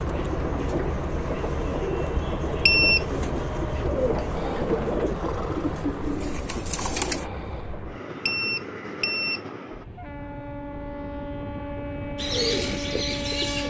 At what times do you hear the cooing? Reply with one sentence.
The cooing can be heard from 0.0 to 7.2 s and from 12.2 to 13.6 s.